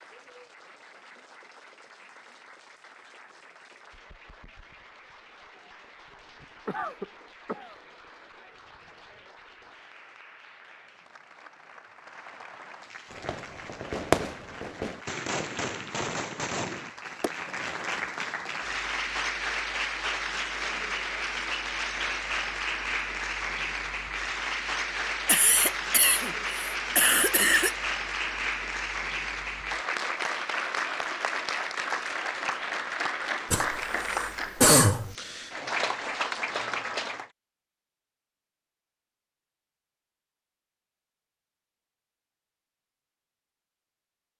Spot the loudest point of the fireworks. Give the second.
14 s.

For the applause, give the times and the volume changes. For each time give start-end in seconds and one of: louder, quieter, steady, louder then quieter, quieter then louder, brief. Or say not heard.
0.0-37.3 louder.